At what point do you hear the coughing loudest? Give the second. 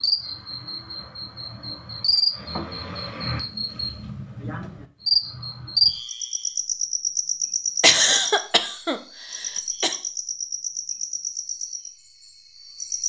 8 s.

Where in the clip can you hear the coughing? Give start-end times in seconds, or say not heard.
7.8-9.9.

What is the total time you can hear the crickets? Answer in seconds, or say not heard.
13 s.